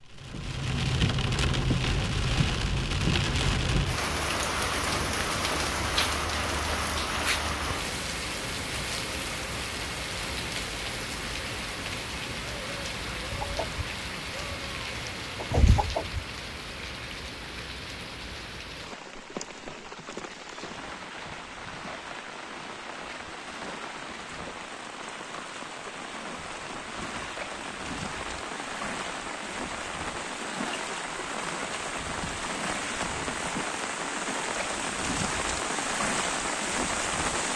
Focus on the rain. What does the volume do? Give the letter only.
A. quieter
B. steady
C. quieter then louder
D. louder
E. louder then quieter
C.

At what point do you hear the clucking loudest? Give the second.
16 s.